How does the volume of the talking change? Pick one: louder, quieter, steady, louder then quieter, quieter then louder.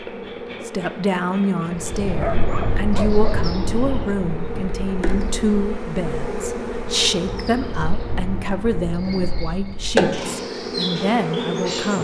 steady.